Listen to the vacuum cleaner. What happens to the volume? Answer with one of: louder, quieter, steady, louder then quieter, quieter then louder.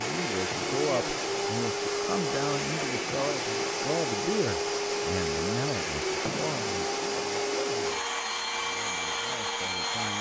steady.